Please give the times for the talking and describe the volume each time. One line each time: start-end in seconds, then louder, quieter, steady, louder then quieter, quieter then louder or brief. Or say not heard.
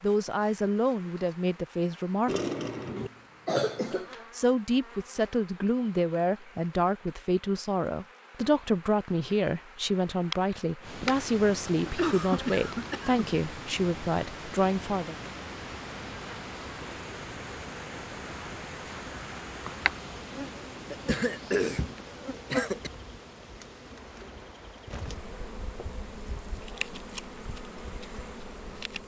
0.0-2.3 brief
3.9-15.2 steady.